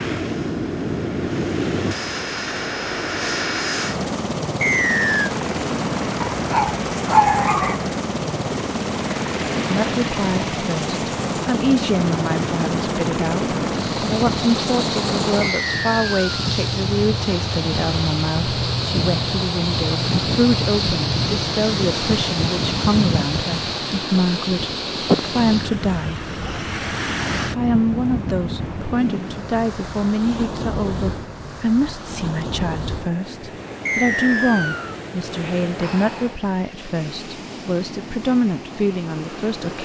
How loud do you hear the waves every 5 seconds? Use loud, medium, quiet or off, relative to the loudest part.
medium, medium, medium, loud, loud, loud, medium, medium.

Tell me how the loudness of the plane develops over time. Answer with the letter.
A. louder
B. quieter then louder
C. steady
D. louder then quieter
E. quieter
C.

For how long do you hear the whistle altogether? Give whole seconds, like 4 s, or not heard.
3 s.